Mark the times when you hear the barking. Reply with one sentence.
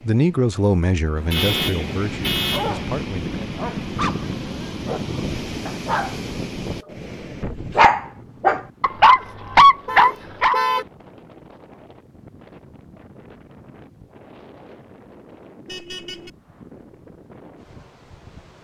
You can hear the barking from 2.5 to 10.6 s.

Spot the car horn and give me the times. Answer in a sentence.
The car horn can be heard from 1.1 to 2.8 s, from 8.8 to 10.8 s and from 15.7 to 16.3 s.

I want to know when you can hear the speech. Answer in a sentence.
The speech can be heard from 0.0 to 3.4 s.